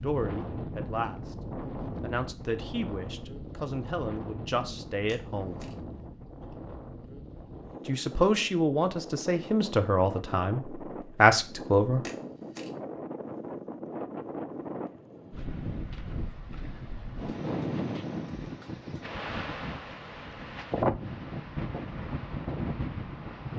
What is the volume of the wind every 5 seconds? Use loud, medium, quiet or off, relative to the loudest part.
medium, medium, medium, loud, loud.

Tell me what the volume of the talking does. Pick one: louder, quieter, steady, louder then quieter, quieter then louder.
louder.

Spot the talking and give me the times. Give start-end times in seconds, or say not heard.
0.0-5.6, 7.8-12.1.